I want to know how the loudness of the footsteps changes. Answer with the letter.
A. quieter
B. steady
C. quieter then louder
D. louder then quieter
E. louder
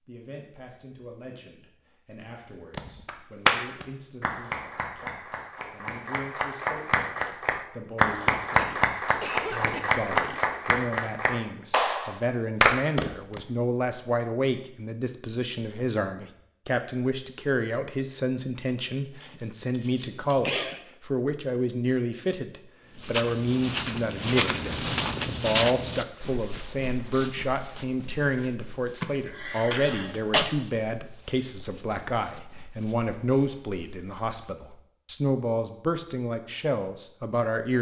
A.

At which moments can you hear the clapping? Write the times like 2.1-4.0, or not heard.
2.7-13.4.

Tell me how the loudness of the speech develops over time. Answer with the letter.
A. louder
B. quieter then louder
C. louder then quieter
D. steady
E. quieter
A.